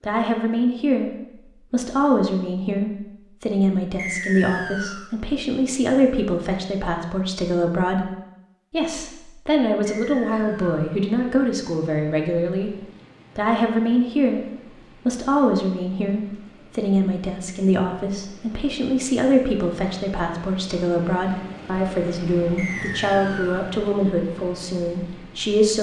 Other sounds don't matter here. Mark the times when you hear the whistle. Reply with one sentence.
The whistle can be heard from 4.0 to 5.1 s, from 10.0 to 10.9 s and from 22.6 to 23.7 s.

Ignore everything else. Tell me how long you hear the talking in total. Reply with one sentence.
The talking can be heard for 24 seconds in total.